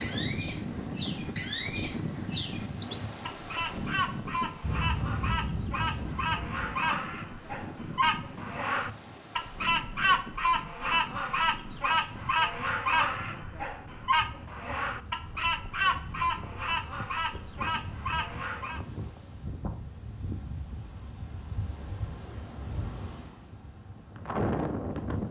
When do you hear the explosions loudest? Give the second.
5 s.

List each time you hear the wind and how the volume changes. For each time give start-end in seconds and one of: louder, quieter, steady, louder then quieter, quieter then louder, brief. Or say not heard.
0.0-25.2 quieter then louder.